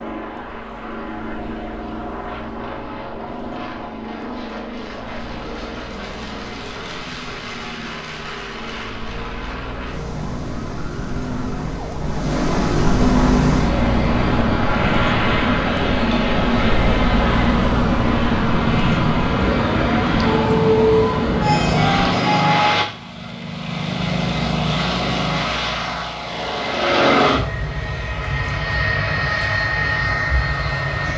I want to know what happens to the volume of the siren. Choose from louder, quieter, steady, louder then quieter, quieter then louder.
louder.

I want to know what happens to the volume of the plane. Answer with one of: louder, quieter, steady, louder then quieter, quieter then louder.
louder.